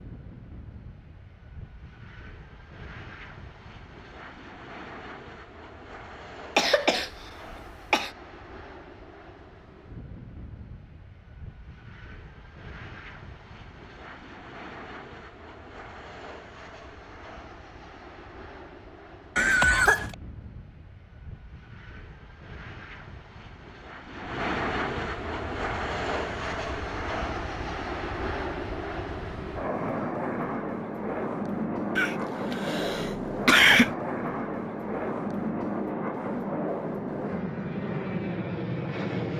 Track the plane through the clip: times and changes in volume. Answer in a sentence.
The plane can be heard from 0.0 to 39.3 s, getting louder.